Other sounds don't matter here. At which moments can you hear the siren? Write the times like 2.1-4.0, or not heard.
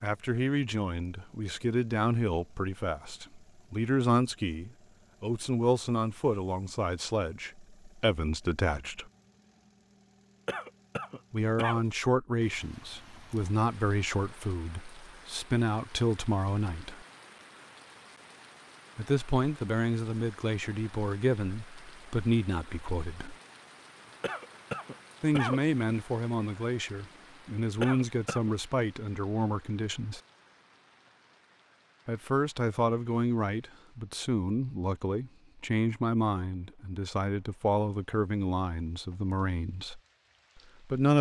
not heard.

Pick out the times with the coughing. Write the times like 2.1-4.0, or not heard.
10.4-11.8, 24.2-25.6, 27.8-28.5.